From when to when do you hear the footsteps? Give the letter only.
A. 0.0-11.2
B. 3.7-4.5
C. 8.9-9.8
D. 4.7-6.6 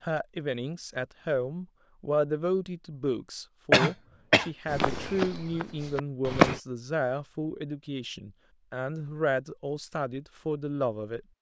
D.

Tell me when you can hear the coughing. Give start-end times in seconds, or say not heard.
3.7-4.5.